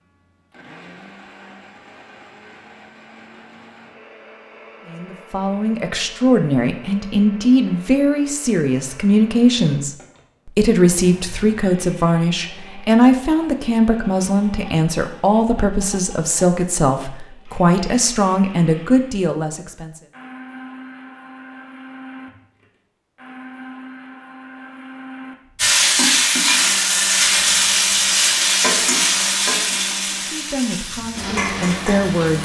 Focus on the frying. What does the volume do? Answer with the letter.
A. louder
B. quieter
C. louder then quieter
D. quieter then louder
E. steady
B.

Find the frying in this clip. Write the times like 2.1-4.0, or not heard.
25.6-32.4.